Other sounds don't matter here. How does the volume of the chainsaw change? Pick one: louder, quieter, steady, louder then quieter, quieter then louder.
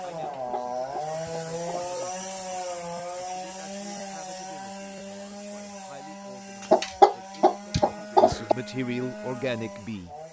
quieter.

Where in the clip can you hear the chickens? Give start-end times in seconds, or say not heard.
0.2-2.0, 6.7-8.6.